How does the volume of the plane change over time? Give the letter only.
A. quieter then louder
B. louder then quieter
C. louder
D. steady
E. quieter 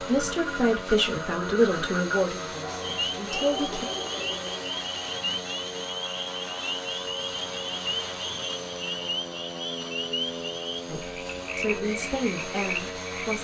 D.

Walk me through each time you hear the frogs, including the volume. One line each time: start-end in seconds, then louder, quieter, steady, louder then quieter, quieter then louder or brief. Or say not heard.
0.0-13.3 steady.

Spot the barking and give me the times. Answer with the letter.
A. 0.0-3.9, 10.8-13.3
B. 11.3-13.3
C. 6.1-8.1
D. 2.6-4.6
D.